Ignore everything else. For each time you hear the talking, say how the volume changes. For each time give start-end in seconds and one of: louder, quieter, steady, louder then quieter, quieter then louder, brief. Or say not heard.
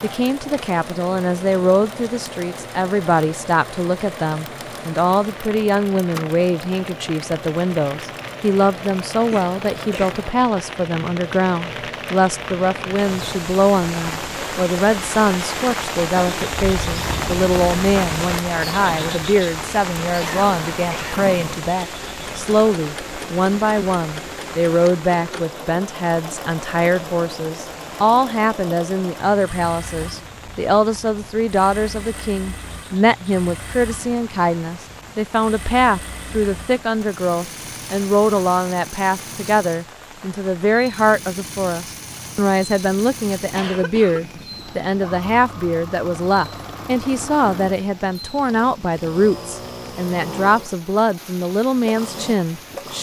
0.0-52.9 steady.